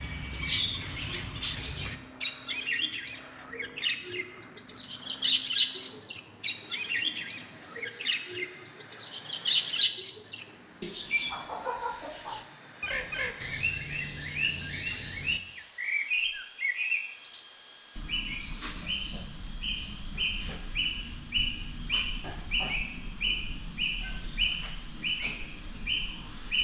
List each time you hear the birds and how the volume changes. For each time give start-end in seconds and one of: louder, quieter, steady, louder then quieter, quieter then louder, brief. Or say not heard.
0.0-26.5 steady.